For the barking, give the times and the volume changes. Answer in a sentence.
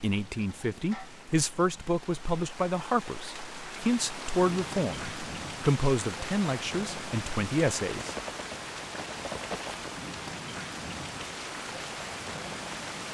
The barking can't be heard in this clip.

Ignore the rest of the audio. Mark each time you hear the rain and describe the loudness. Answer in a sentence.
You can hear the rain from 0.0 to 13.0 s, getting louder.